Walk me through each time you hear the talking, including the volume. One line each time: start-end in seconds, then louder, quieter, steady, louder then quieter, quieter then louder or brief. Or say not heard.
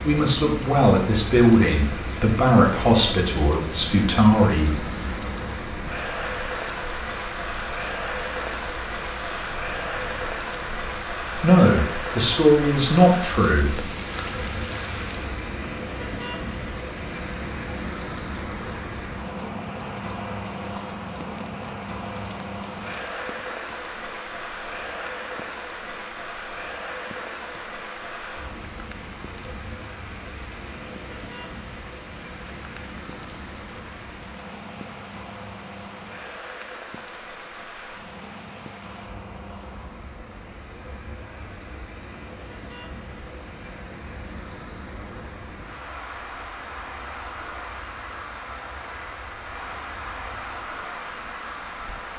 0.0-4.8 steady
11.4-13.8 brief.